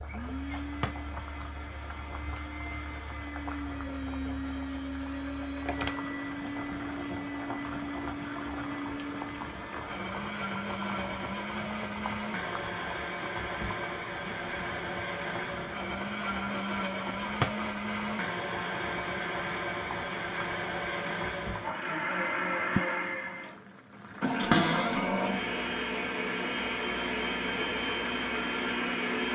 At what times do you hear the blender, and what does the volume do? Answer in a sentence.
The blender can be heard from 0.0 to 29.2 s, getting louder.